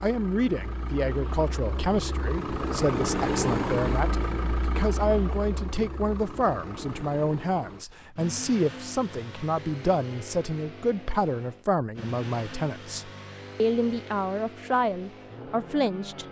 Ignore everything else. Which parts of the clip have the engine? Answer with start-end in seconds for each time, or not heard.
0.0-16.2.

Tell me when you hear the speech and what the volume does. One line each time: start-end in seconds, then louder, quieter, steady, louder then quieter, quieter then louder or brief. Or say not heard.
0.0-16.2 steady.